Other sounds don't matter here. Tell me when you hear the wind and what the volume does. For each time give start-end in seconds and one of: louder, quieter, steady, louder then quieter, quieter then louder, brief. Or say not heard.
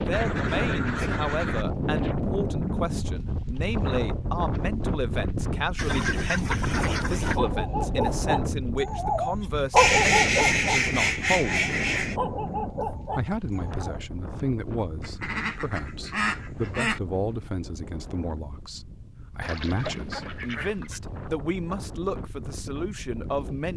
0.0-23.7 quieter.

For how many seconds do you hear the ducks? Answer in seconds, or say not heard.
9 s.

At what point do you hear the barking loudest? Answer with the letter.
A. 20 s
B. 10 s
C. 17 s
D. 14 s
B.